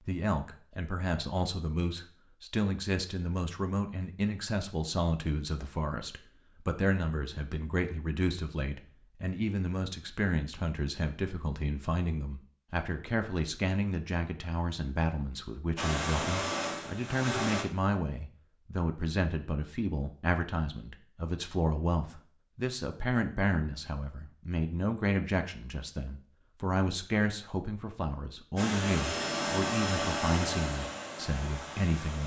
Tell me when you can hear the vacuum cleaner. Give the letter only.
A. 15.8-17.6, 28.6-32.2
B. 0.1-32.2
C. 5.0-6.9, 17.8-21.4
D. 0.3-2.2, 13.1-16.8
A.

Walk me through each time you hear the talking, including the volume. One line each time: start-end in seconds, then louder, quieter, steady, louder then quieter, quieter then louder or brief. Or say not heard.
0.1-32.2 steady.